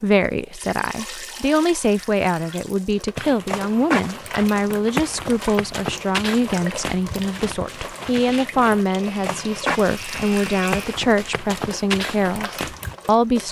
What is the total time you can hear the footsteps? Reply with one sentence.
The footsteps can be heard for 10 seconds in total.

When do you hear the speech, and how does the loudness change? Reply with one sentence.
You can hear the speech from 0.0 to 13.4 s, at a steady volume.